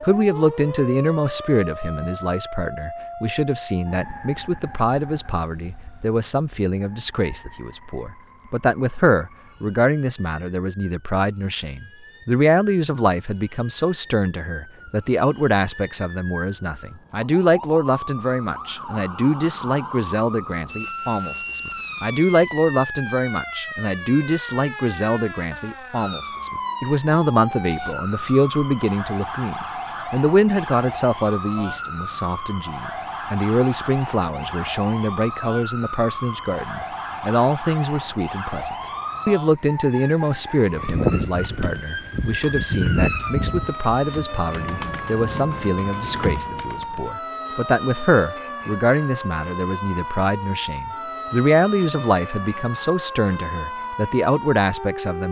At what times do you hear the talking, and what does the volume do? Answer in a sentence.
You can hear the talking from 0.0 to 55.2 s, at a steady volume.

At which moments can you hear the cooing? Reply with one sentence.
The cooing can be heard from 40.7 to 47.1 s.